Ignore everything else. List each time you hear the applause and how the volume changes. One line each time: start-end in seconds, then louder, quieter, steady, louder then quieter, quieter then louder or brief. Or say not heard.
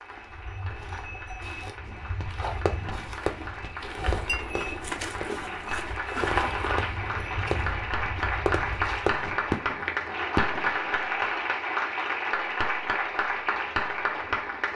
0.0-14.7 louder.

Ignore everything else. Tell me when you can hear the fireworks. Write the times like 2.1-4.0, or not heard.
1.9-10.9.